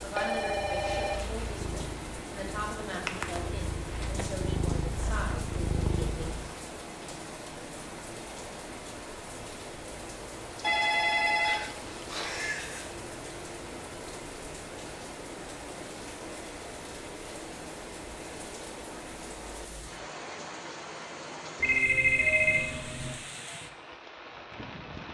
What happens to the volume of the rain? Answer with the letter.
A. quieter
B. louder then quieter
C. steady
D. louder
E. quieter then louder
C.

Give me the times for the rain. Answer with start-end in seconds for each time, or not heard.
0.0-25.1.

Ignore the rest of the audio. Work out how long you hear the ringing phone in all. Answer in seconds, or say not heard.
5 s.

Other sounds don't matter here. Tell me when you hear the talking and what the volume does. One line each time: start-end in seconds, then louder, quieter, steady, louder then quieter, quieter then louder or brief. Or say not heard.
0.0-6.4 steady.